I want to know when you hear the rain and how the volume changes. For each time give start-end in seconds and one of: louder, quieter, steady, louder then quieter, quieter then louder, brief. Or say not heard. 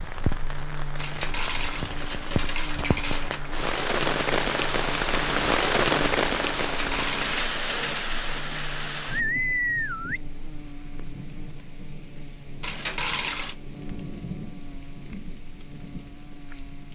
0.0-16.8 louder then quieter.